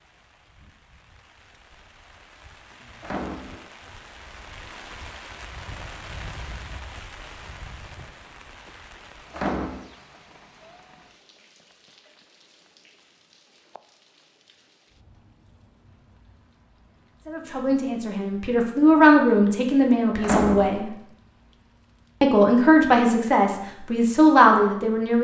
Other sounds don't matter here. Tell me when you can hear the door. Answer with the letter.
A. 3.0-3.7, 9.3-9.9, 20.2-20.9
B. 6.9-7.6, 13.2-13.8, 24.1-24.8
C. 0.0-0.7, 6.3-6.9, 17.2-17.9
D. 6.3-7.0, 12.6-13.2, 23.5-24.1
A.